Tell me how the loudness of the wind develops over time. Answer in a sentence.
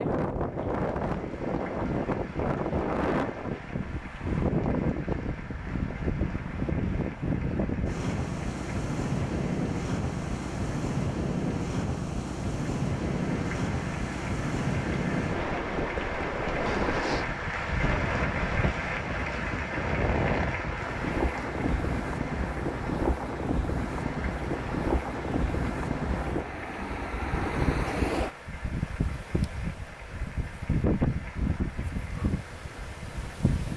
The loudness of the wind stays about the same.